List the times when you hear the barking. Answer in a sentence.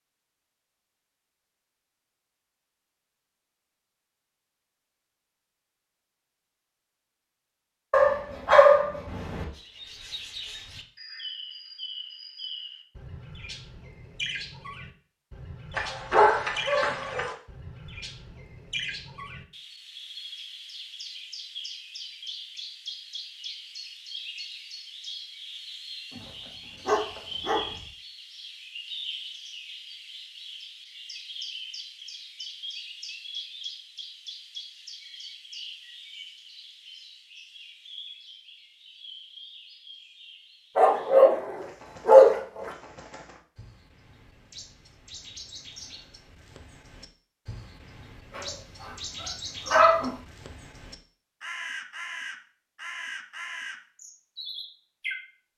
You can hear the barking from 7.9 to 9.4 s, from 15.8 to 17.3 s, from 26.1 to 27.9 s, from 40.8 to 42.7 s and from 48.4 to 50.1 s.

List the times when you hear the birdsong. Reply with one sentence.
The birdsong can be heard from 9.5 to 55.5 s.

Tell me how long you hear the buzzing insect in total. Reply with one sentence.
You can't hear the buzzing insect here.